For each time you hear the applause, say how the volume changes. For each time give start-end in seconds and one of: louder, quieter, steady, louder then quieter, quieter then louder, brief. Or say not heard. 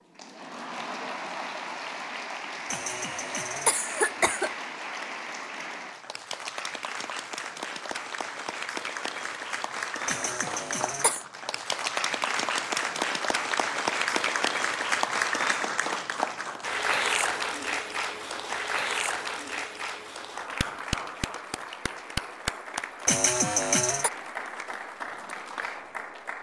0.1-26.3 louder then quieter.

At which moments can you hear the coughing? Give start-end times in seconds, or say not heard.
2.7-4.5, 10.1-11.2, 23.1-24.1.